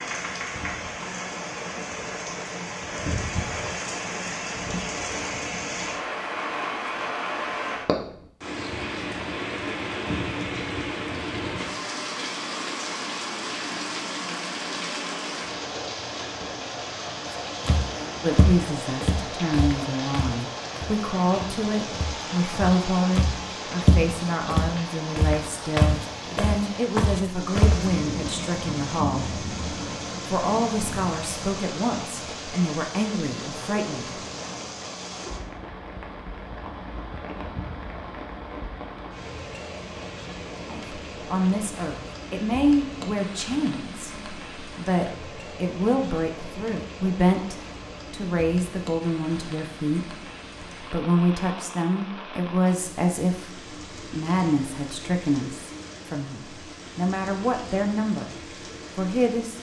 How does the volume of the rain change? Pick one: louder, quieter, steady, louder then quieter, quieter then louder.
quieter.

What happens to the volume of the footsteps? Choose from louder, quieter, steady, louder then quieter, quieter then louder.
quieter then louder.